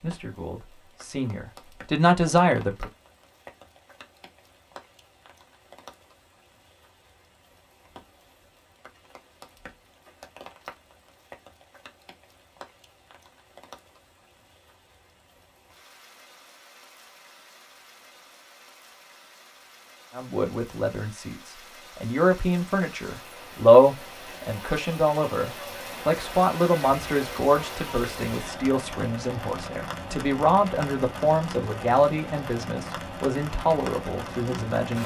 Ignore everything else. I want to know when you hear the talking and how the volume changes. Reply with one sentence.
You can hear the talking briefly from 0.0 to 2.9 s; and from 20.1 to 35.0 s, getting louder then quieter.